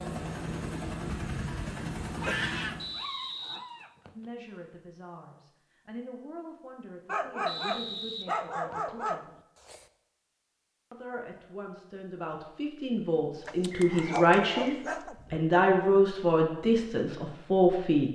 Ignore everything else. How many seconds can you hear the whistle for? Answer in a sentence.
You can hear the whistle for 4 seconds altogether.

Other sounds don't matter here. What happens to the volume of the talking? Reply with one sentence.
The volume of the talking goes up.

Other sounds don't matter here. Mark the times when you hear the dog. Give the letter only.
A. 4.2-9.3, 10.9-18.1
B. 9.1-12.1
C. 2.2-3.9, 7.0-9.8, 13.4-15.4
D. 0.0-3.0
C.